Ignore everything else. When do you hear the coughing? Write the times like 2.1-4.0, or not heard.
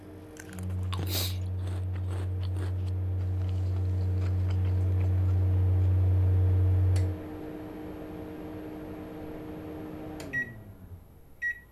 0.9-1.4.